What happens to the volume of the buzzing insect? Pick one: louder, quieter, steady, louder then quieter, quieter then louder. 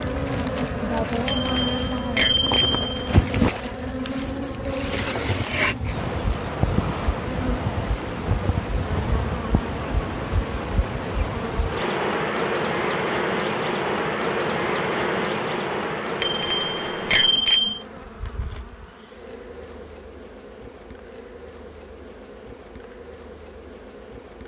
quieter.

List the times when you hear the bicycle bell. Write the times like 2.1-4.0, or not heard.
1.2-3.3, 16.2-17.8.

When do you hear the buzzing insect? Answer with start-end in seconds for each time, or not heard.
0.0-24.4.